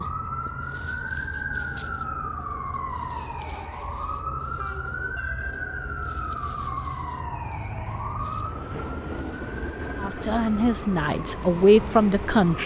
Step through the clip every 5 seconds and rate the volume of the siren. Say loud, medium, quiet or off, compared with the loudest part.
loud, loud, medium.